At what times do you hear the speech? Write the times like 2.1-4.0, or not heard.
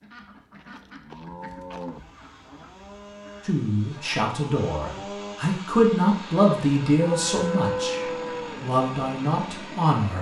3.5-10.1.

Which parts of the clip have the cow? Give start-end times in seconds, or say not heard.
0.6-2.0, 7.0-8.7.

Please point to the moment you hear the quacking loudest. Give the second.
1 s.